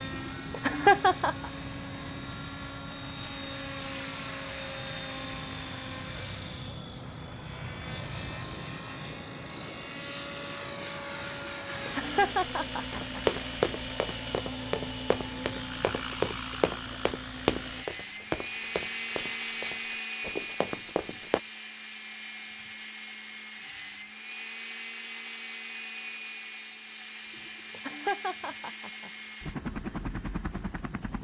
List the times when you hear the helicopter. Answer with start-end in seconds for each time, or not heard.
0.0-31.1.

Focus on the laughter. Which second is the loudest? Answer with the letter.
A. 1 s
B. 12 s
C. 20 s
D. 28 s
A.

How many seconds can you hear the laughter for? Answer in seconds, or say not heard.
5 s.